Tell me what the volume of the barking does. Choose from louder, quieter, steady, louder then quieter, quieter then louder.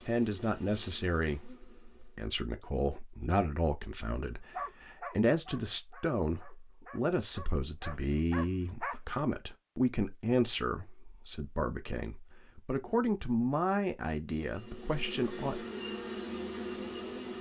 quieter then louder.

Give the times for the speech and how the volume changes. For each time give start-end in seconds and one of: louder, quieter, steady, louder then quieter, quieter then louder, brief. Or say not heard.
0.1-15.7 steady.